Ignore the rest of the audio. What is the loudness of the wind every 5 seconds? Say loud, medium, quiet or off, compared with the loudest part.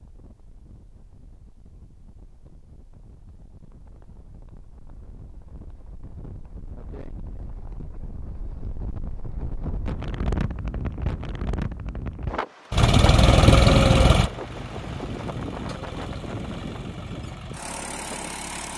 quiet, medium, loud, medium.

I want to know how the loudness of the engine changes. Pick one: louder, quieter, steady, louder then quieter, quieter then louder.
quieter.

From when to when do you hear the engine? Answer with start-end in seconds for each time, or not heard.
12.7-18.7.